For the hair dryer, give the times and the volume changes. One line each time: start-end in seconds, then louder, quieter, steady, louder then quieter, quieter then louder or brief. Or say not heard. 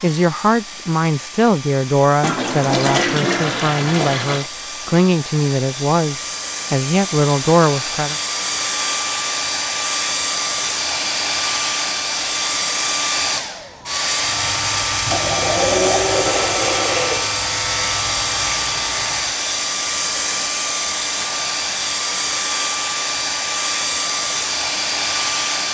0.0-25.6 louder.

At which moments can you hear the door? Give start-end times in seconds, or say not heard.
not heard.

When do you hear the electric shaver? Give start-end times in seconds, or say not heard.
14.2-19.4.